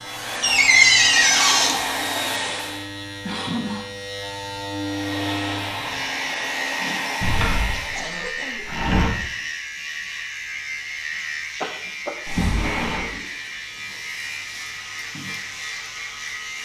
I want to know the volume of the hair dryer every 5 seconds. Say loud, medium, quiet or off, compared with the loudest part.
loud, loud, off, off.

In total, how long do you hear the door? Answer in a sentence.
The door can be heard for 4 seconds in total.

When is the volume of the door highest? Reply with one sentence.
The volume of the door peaks at 1 second.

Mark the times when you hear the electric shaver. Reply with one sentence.
The electric shaver can be heard from 0.0 to 16.6 s.